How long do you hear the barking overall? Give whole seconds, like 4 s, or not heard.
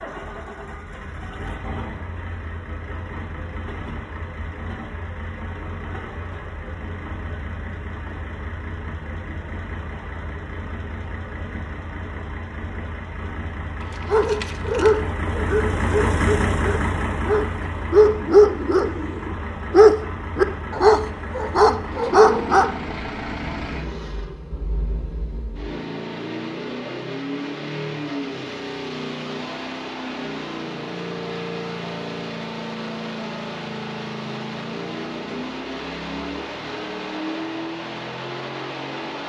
9 s.